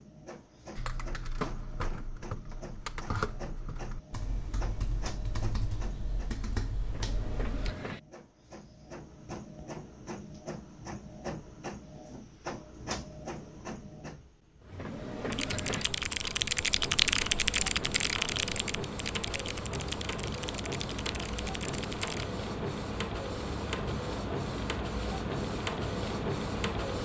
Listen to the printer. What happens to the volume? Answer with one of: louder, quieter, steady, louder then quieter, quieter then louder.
louder.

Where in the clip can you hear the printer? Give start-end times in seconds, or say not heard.
0.0-27.0.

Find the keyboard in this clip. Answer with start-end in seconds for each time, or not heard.
0.8-7.8, 15.3-22.3.